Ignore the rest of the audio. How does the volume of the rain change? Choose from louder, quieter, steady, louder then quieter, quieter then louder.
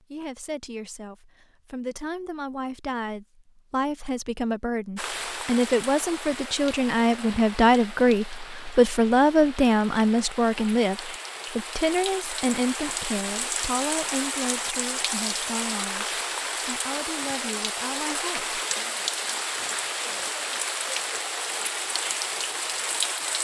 louder.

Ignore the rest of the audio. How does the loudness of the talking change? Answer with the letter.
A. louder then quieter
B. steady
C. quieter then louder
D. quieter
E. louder
A.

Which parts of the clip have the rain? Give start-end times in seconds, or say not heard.
5.0-23.4.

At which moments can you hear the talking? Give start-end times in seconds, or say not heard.
0.0-18.6.